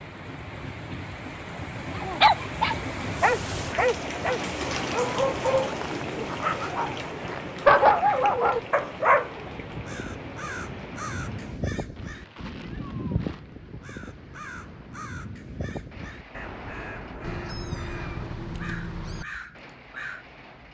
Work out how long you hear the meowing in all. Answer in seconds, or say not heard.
2 s.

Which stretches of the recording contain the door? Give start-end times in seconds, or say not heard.
not heard.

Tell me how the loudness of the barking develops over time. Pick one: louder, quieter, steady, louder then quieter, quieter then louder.
quieter then louder.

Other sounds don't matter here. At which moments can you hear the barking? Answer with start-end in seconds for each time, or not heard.
1.9-9.3.